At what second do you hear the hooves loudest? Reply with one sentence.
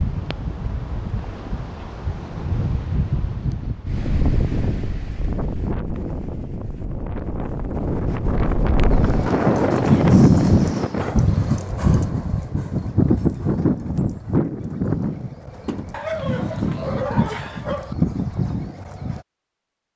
The volume of the hooves peaks at 10 seconds.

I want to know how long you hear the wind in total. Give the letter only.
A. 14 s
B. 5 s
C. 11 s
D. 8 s
C.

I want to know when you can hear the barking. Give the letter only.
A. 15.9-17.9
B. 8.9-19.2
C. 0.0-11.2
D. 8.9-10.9
A.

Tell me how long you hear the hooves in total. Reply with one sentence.
You can hear the hooves for 10 seconds altogether.